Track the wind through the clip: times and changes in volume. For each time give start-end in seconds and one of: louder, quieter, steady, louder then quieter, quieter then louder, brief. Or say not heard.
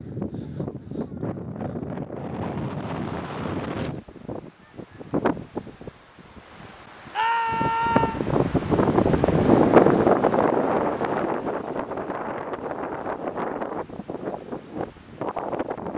0.0-15.9 louder then quieter.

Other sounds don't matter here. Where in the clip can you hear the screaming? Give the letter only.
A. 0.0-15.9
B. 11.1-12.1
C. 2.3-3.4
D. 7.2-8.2
D.